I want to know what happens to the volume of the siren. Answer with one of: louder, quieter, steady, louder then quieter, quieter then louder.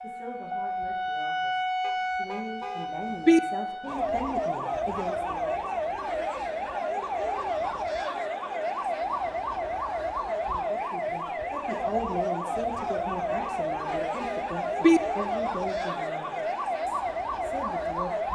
steady.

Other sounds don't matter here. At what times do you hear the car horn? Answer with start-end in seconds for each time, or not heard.
1.9-3.4, 13.4-15.0.